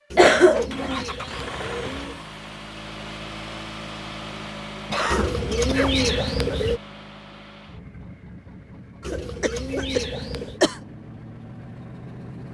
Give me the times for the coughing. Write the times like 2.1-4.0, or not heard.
0.1-1.1, 4.9-6.6, 9.1-10.8.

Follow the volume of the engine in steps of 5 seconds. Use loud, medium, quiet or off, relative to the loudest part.
loud, medium, medium.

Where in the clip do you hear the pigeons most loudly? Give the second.
6 s.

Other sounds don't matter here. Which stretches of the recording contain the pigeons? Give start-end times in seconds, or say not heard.
0.1-2.2, 5.1-6.8, 9.0-10.6.